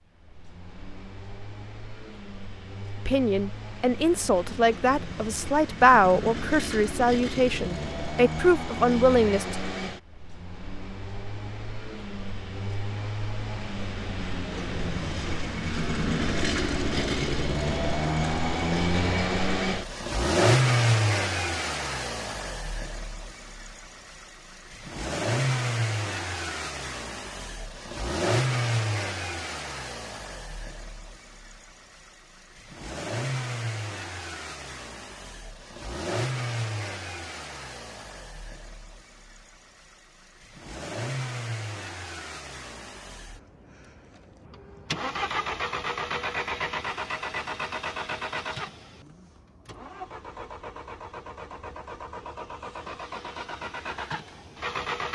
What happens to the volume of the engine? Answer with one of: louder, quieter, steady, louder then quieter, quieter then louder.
louder then quieter.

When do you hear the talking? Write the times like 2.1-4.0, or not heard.
3.0-9.6.